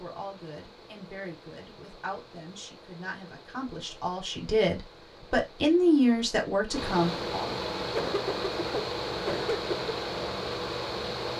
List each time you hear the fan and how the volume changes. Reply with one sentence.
The fan can be heard from 0.0 to 11.3 s, getting louder.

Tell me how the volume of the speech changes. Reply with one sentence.
The loudness of the speech goes up.